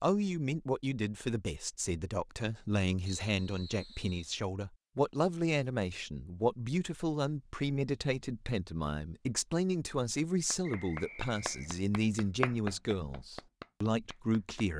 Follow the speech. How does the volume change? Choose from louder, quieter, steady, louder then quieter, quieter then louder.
steady.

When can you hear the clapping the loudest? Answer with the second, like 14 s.
13 s.